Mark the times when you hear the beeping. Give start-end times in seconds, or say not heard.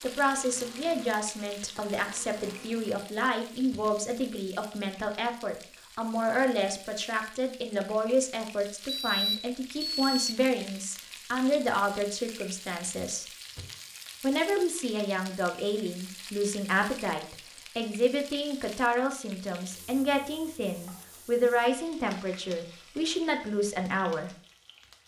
8.8-10.3.